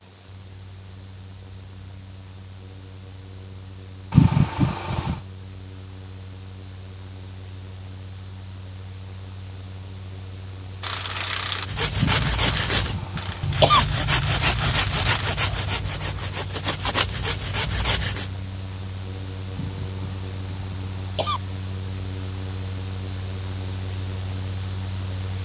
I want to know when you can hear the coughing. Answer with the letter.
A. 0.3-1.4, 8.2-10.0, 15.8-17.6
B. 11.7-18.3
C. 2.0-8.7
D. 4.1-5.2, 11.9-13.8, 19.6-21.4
D.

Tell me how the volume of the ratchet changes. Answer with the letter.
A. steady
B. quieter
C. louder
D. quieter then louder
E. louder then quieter
D.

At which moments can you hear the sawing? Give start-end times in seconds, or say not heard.
11.7-18.3.